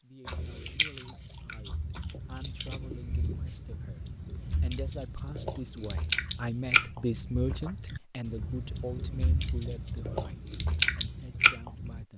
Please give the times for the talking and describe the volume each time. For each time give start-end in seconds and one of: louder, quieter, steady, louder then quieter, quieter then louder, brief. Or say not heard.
0.0-12.1 louder then quieter.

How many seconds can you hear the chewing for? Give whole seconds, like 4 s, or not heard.
12 s.